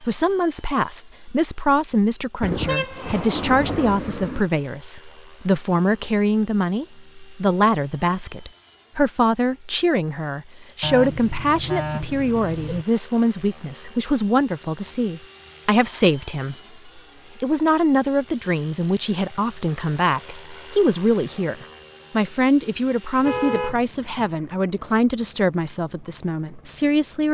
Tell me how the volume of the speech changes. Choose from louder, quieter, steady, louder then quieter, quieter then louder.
steady.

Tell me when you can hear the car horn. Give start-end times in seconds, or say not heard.
2.4-4.5, 10.8-12.8, 23.2-24.2.